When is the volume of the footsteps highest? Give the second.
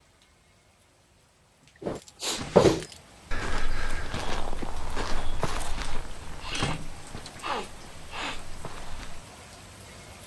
3 s.